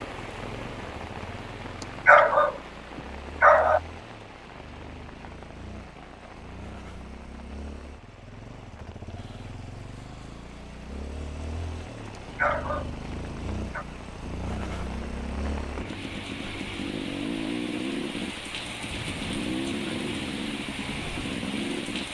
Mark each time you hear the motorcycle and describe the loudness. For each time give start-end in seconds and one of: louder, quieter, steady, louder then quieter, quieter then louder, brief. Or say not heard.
0.0-22.1 louder.